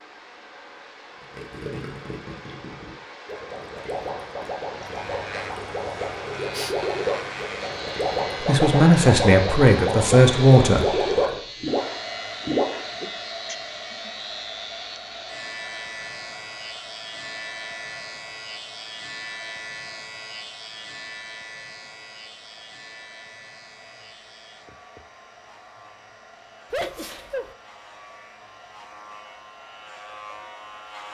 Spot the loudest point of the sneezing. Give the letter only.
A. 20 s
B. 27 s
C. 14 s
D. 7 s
B.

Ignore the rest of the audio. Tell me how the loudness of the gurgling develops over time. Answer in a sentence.
The volume of the gurgling goes up.